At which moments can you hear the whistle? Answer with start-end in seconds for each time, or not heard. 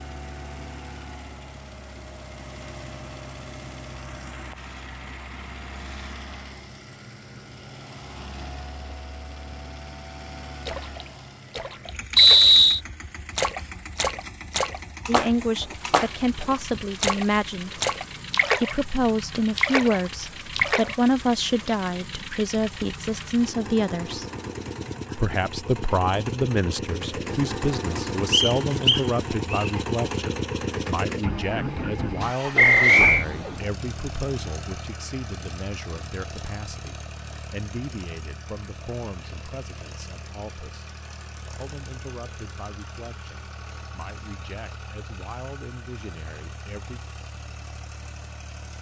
12.2-12.8, 28.3-29.7, 32.5-33.2.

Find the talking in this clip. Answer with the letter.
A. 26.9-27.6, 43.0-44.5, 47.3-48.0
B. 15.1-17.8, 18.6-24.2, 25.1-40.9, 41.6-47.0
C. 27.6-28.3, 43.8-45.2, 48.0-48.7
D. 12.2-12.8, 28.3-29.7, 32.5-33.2
B.